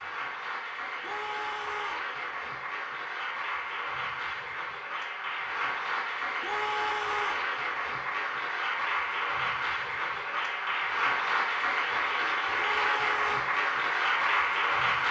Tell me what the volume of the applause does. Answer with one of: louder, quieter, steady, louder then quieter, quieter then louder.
louder.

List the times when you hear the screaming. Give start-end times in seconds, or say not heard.
1.0-2.1, 6.4-7.5, 12.6-13.4.